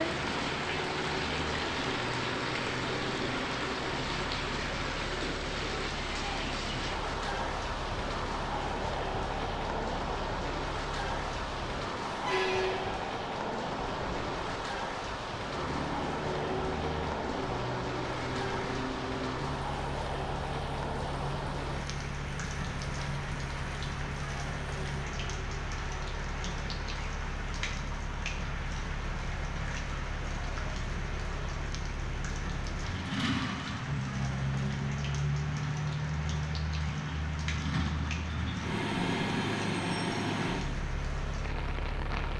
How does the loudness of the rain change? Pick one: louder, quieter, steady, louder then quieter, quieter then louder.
quieter.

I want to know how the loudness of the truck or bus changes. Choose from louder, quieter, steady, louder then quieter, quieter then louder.
louder.